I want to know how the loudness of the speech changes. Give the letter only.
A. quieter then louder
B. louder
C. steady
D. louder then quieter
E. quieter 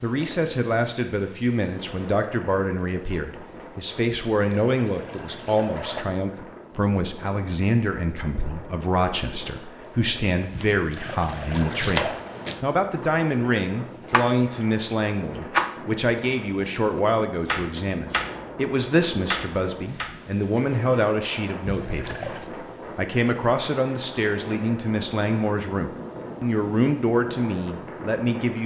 C.